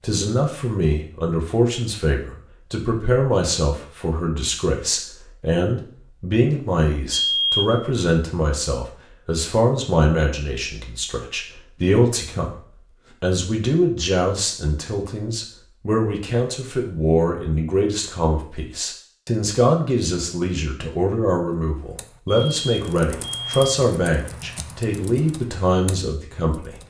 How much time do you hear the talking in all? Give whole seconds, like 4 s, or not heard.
26 s.